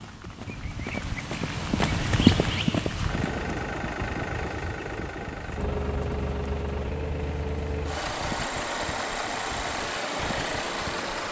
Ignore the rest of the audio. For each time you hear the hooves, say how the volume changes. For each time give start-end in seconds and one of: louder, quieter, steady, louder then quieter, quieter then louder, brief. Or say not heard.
0.0-11.1 quieter.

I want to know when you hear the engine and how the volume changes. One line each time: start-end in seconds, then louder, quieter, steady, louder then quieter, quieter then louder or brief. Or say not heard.
3.0-11.2 steady.